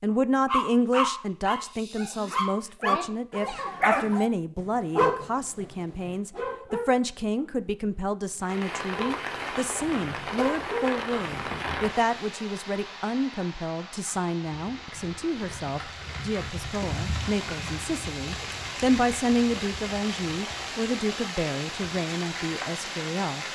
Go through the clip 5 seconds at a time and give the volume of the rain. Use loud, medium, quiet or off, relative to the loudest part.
off, loud, loud, loud, loud.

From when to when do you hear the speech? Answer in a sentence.
The speech can be heard from 0.0 to 23.4 s.